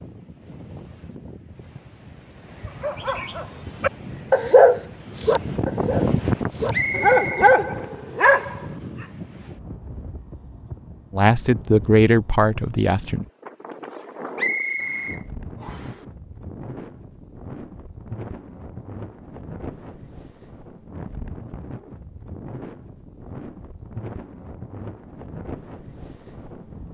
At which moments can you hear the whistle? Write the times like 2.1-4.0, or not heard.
6.7-7.5, 14.3-15.9.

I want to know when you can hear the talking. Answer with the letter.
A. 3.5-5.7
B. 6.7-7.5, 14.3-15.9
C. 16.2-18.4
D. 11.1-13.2
D.